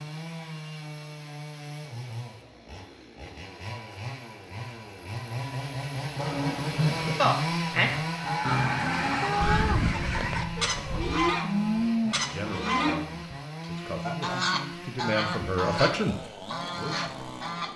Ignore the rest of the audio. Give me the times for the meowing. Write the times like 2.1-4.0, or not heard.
9.2-11.1.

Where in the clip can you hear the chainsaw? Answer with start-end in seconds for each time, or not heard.
0.0-17.7.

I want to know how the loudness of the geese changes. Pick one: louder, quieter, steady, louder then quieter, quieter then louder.
steady.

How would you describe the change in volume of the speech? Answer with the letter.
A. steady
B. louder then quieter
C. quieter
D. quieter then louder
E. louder
B.